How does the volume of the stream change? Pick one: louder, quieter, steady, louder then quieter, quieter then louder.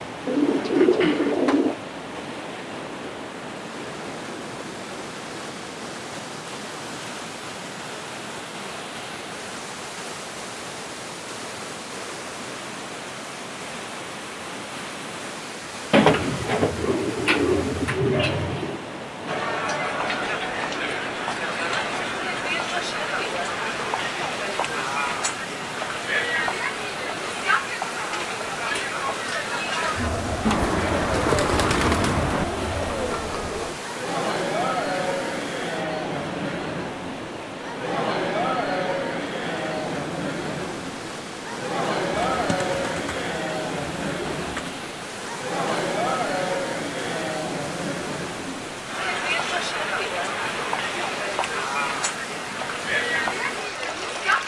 steady.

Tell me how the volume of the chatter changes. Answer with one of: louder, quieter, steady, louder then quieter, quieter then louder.
steady.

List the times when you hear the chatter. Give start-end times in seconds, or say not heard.
19.2-54.4.